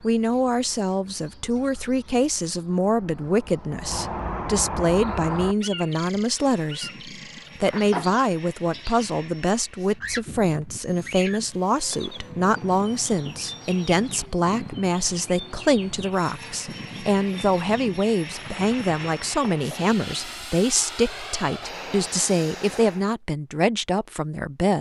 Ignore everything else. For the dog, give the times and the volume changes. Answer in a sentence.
The dog can't be heard in this clip.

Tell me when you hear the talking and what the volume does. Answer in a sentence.
You can hear the talking from 0.0 to 24.7 s, at a steady volume.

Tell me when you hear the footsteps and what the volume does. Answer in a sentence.
The footsteps can't be heard in this clip.